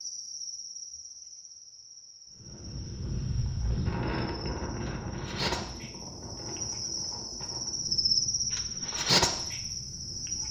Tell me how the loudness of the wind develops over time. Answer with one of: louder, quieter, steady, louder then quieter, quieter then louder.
quieter.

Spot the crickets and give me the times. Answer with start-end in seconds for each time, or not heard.
0.0-10.4.